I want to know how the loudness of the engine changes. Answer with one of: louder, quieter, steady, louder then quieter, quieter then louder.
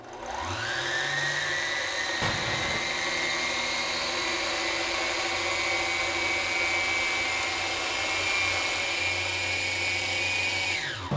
steady.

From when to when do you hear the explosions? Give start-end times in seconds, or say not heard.
2.2-2.8.